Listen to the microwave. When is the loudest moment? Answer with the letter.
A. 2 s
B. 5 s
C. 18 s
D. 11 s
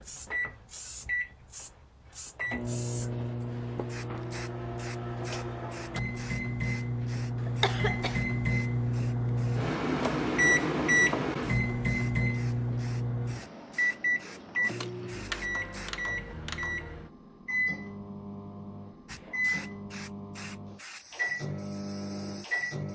D.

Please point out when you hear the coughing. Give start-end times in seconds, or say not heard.
7.4-8.2.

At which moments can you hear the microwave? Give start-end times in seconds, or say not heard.
0.0-22.9.